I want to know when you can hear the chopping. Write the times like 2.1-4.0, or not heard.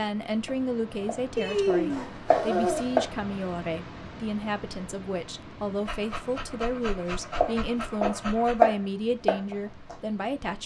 0.0-3.1, 7.3-9.9.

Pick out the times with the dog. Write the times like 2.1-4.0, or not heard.
1.4-3.0, 5.8-8.7.